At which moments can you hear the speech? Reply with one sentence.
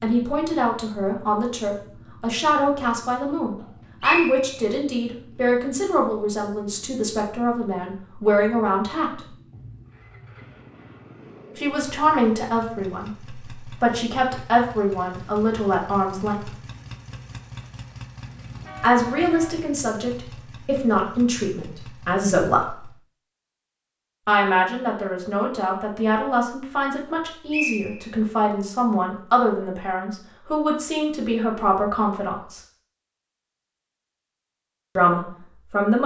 The speech can be heard from 0.0 to 9.3 s, from 11.6 to 16.6 s, from 18.8 to 22.9 s, from 24.2 to 32.6 s and from 35.0 to 36.0 s.